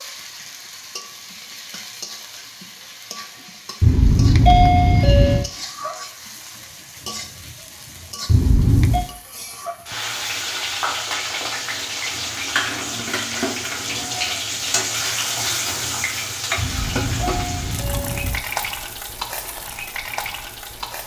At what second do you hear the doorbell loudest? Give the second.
5 s.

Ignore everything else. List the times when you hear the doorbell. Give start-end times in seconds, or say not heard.
3.8-5.5, 8.2-9.1, 16.6-18.4.